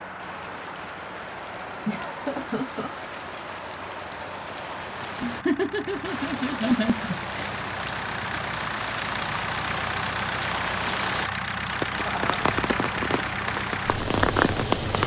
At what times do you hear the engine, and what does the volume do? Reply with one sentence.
You can hear the engine from 0.0 to 15.0 s, getting louder.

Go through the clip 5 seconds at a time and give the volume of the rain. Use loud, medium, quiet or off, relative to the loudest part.
medium, medium, loud.